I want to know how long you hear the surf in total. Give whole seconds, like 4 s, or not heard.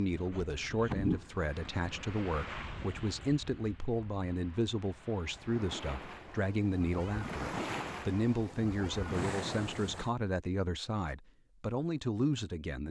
10 s.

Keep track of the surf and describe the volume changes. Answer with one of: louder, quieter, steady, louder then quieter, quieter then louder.
quieter then louder.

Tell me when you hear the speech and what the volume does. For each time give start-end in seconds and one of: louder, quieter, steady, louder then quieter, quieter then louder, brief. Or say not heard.
0.0-12.8 steady.